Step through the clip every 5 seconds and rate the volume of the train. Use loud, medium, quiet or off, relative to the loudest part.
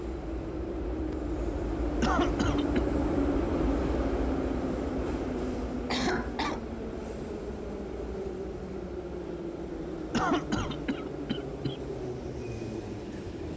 loud, medium, medium.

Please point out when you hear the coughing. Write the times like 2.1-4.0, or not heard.
2.0-2.8, 5.8-6.6, 10.1-11.8.